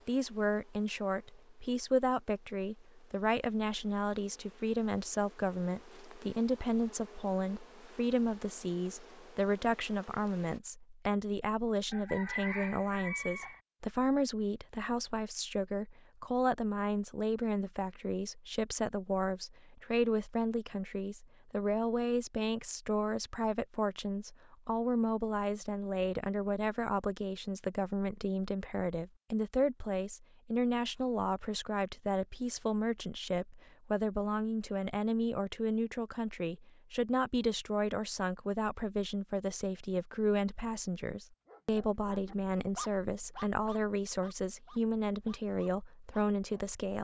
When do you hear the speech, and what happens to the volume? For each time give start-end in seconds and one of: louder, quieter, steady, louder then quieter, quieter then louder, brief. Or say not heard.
0.1-46.9 steady.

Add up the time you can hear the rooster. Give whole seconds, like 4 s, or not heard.
2 s.